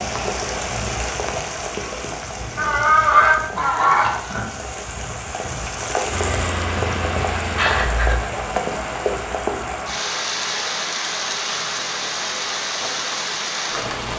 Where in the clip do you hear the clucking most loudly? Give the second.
3 s.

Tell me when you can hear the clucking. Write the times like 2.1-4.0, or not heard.
2.5-4.5, 7.5-8.4.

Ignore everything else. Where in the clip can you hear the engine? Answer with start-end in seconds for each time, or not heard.
6.1-8.2.